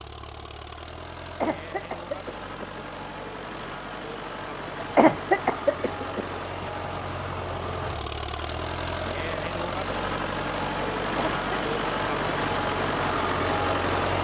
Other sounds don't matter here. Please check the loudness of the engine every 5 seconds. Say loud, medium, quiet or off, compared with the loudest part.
medium, medium, loud.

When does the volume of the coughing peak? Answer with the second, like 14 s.
5 s.